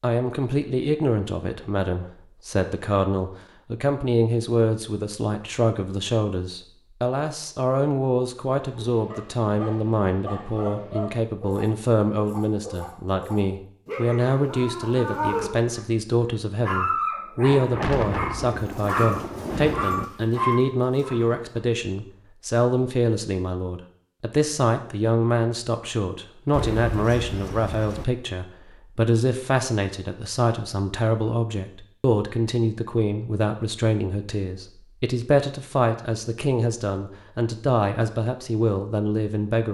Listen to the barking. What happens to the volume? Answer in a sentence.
The volume of the barking goes up.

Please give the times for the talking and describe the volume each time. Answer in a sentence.
The talking can be heard from 0.0 to 39.6 s, at a steady volume.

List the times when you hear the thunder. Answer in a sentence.
The thunder can be heard from 8.8 to 11.1 s, from 17.4 to 20.1 s and from 26.5 to 28.1 s.